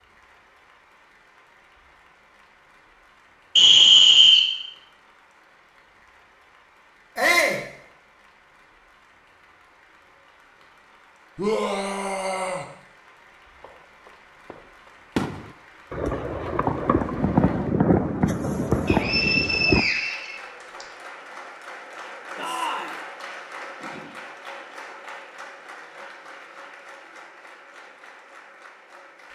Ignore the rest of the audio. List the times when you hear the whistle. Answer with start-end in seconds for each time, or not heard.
3.5-4.5, 18.9-20.9.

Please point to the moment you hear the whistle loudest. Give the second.
4 s.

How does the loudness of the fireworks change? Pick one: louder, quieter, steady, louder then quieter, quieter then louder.
louder.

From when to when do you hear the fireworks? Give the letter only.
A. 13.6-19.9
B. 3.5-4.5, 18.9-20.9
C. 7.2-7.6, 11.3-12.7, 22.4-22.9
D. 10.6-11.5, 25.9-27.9
A.